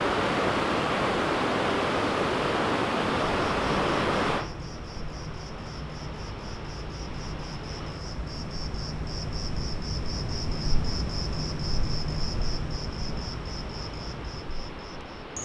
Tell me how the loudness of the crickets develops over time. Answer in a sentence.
The loudness of the crickets goes up, then down.